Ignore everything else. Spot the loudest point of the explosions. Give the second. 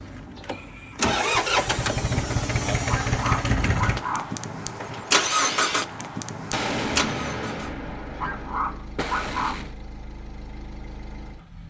7 s.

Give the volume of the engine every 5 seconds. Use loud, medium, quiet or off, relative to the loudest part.
loud, loud, quiet.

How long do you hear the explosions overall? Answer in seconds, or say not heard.
3 s.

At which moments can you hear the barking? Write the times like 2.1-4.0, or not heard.
2.9-4.3, 8.2-9.7.